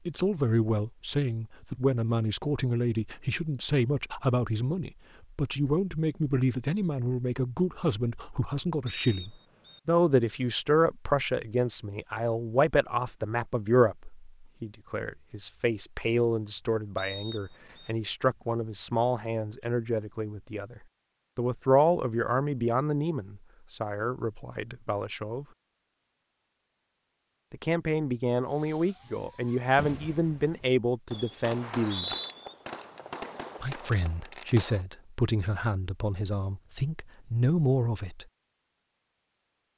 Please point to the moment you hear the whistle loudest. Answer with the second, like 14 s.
32 s.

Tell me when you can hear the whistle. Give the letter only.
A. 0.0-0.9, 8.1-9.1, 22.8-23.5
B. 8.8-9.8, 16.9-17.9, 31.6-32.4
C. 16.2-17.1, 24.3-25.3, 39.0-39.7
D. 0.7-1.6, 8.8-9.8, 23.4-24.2
B.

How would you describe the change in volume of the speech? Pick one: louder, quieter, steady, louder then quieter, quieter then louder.
steady.